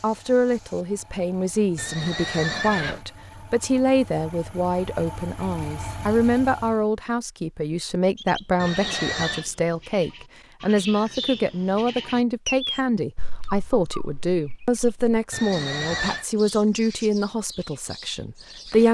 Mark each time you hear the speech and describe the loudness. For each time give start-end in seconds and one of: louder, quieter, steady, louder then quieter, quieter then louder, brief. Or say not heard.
0.0-18.9 steady.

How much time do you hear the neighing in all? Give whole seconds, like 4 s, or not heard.
3 s.